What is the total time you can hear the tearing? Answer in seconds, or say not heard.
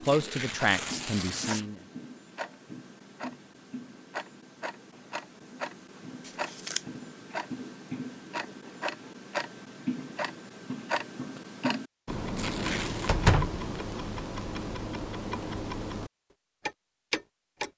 3 s.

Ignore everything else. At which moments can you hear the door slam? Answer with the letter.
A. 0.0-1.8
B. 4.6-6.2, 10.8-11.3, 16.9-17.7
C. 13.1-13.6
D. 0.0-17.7
C.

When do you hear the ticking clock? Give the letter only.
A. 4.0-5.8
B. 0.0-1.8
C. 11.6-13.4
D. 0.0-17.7
D.